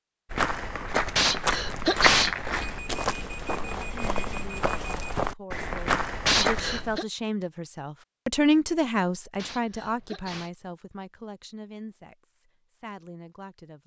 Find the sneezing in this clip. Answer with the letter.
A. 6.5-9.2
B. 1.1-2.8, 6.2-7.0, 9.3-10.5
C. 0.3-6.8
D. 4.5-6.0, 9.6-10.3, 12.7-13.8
B.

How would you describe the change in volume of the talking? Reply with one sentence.
The volume of the talking goes up, then down.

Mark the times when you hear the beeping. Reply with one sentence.
You can hear the beeping from 2.5 to 5.2 s.